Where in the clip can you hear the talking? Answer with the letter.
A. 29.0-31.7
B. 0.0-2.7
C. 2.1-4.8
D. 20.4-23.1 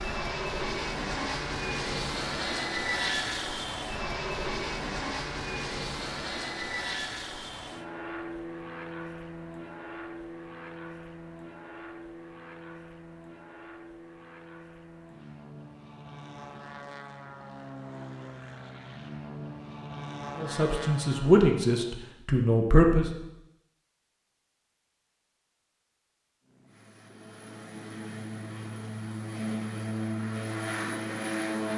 D.